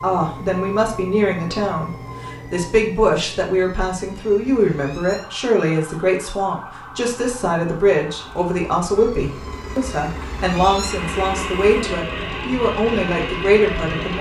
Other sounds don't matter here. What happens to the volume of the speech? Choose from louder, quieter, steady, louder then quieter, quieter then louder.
steady.